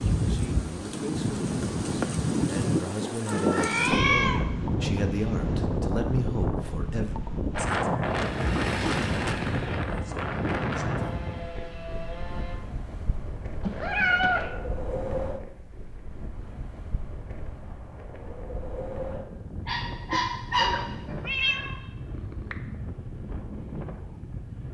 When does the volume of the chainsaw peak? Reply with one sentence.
The loudest moment of the chainsaw is at 9 seconds.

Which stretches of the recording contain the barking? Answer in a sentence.
You can hear the barking from 19.6 to 21.1 s.